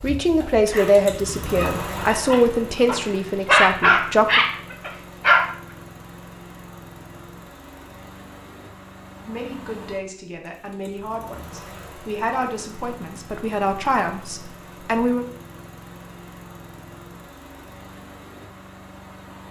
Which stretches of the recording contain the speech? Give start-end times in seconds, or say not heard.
0.0-4.4, 9.2-15.2.